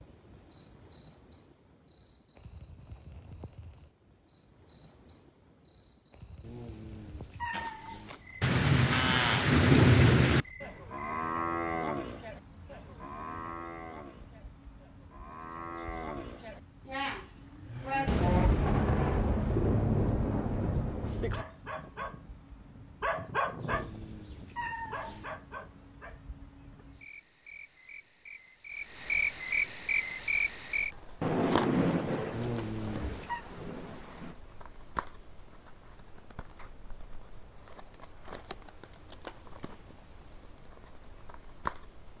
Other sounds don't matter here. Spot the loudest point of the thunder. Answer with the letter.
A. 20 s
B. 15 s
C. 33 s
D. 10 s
D.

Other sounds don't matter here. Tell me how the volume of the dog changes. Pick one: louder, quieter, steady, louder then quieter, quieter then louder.
louder then quieter.